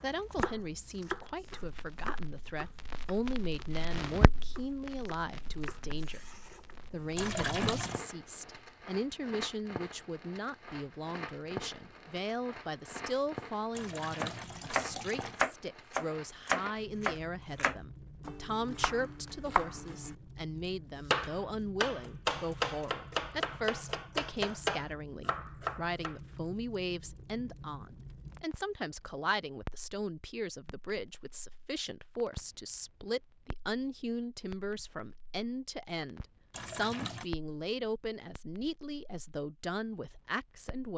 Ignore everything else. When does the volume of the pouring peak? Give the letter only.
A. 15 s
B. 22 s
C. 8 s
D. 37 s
C.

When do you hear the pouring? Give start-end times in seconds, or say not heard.
7.2-8.0, 13.8-15.4, 36.5-37.3.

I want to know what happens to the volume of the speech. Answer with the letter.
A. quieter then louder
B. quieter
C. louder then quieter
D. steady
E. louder
D.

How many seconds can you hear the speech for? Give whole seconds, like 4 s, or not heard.
40 s.